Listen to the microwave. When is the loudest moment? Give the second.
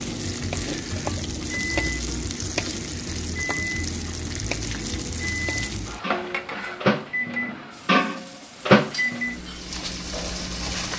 8 s.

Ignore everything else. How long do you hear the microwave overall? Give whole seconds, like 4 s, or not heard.
11 s.